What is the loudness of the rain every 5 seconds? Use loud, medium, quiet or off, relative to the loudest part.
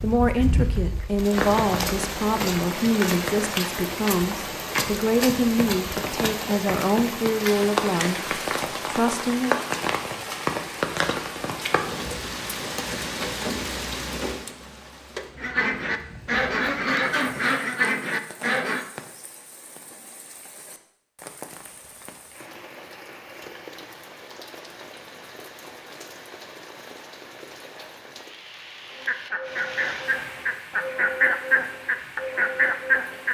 loud, loud, loud, quiet, quiet, quiet, quiet.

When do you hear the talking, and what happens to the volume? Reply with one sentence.
The talking can be heard from 0.0 to 9.6 s, at a steady volume.